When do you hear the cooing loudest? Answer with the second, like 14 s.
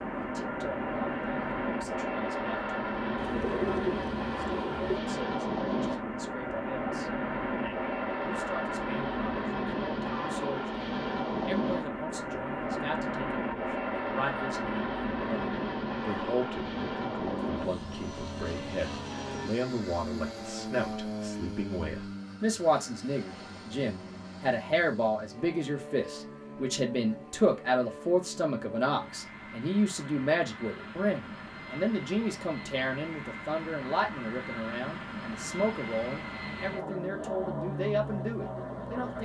4 s.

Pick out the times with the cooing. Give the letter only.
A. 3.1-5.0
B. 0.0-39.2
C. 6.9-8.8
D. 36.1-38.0
A.